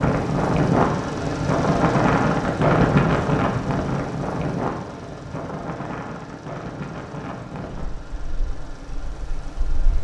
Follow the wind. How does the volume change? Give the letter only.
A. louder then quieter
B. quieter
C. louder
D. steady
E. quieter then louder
B.